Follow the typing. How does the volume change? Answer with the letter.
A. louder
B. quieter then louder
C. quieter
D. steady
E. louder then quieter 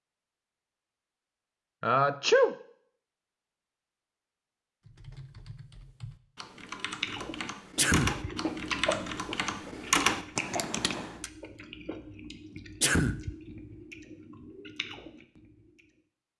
A.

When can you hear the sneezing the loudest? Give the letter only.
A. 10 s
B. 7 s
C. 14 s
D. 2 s
D.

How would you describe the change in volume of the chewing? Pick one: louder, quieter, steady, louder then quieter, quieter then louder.
quieter.